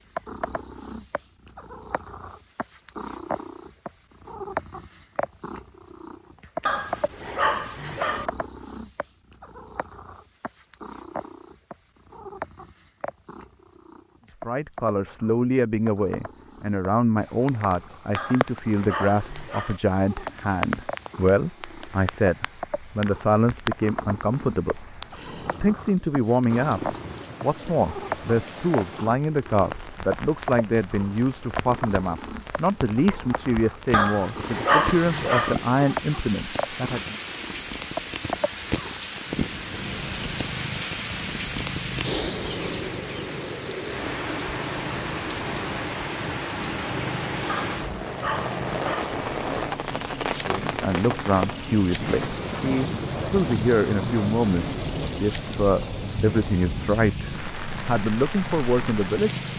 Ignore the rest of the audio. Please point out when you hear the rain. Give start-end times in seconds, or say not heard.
17.2-59.5.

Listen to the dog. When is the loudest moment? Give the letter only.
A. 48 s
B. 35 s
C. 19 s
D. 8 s
B.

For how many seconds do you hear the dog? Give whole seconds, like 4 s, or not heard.
7 s.